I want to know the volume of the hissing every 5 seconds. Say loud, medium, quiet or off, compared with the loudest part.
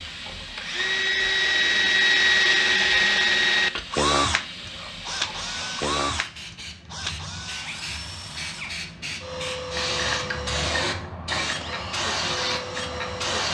medium, medium, loud.